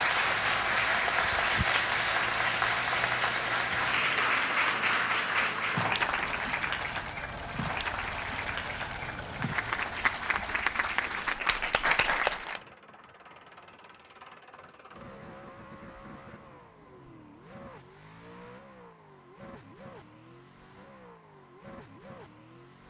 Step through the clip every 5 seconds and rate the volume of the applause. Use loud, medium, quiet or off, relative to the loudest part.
loud, medium, loud, off, off.